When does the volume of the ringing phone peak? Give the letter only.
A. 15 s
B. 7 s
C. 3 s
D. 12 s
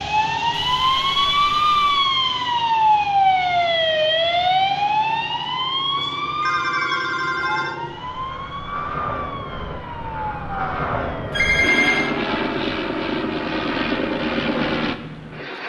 D.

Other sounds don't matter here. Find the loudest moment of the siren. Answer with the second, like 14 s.
3 s.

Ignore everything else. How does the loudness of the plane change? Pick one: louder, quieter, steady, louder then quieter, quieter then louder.
louder.